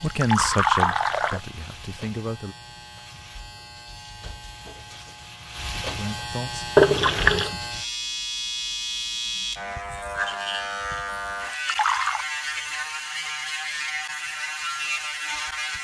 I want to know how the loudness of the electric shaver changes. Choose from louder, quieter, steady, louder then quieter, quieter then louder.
louder.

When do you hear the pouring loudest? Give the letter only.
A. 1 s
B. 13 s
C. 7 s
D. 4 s
C.